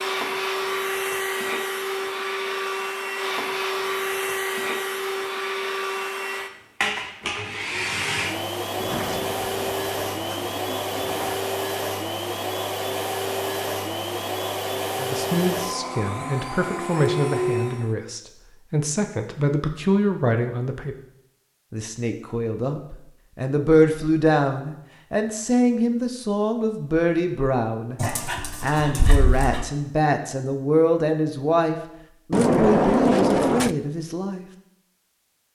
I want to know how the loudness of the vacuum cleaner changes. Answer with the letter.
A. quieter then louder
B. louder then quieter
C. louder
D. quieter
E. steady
E.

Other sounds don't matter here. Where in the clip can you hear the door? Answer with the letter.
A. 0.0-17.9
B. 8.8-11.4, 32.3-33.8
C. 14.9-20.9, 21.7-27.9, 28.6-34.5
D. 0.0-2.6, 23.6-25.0
B.